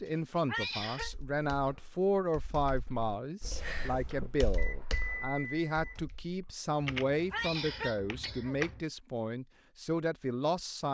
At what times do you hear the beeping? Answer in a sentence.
The beeping can be heard from 4.5 to 6.0 s.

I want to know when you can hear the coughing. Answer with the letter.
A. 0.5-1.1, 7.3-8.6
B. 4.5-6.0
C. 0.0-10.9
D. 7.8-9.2
A.